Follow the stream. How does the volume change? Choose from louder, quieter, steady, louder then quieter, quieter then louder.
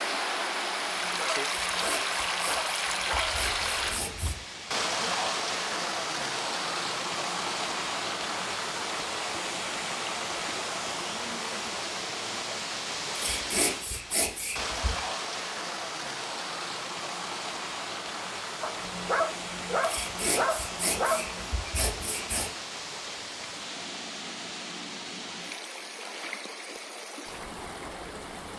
quieter.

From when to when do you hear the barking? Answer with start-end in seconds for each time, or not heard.
0.9-3.3, 18.6-21.4.